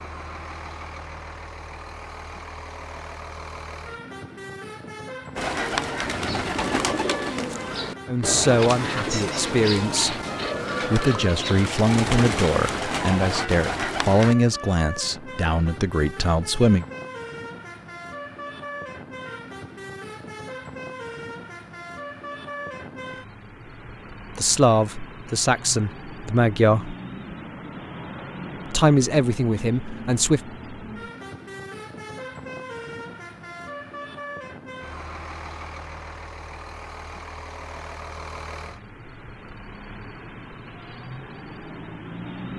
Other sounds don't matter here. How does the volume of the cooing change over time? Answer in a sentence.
The loudness of the cooing stays about the same.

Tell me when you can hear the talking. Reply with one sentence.
The talking can be heard from 8.1 to 10.2 s, from 10.9 to 16.9 s, from 24.4 to 26.9 s and from 28.6 to 30.4 s.